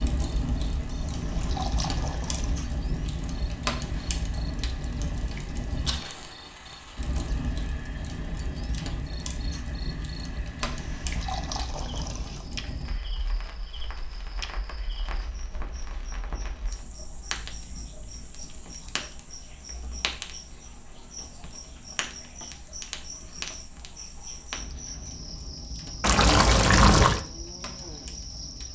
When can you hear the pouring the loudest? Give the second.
27 s.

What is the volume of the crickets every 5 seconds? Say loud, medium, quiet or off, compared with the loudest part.
medium, medium, loud, medium, loud, loud.